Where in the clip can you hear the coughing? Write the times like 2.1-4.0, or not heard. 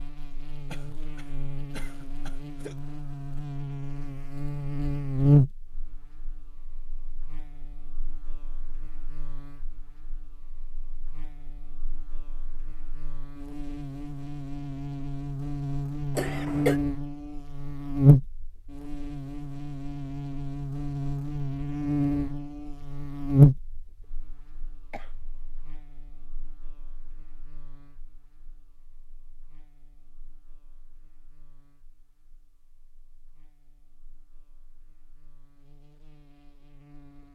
0.7-2.8, 16.1-16.8, 24.9-25.4.